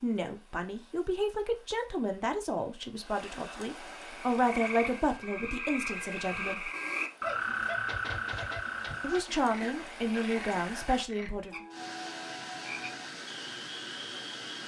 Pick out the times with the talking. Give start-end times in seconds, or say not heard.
0.0-6.7, 9.0-11.6.